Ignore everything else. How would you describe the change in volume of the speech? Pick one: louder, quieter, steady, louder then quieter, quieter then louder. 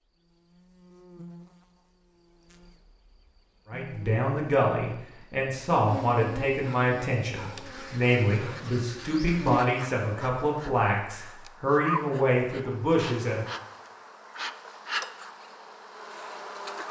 steady.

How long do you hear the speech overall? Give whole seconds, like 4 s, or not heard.
10 s.